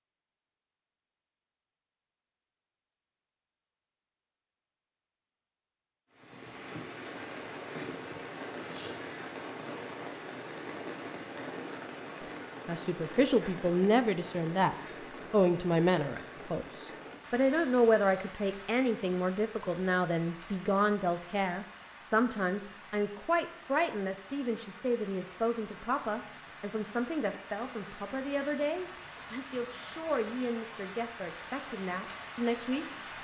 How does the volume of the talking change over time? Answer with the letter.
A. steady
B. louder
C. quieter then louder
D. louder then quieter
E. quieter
E.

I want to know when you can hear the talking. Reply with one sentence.
You can hear the talking from 12.7 to 33.2 s.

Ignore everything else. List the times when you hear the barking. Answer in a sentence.
The barking can't be heard in this clip.